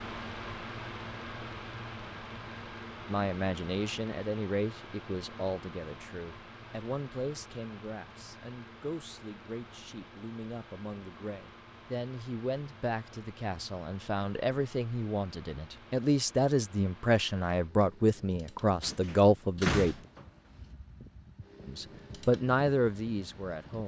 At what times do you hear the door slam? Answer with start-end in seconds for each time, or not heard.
18.8-20.2.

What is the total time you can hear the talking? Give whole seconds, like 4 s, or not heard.
19 s.